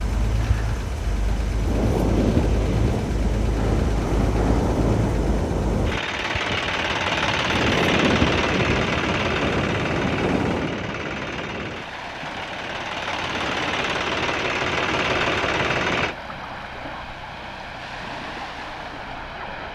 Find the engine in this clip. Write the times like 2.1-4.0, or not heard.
0.0-16.1.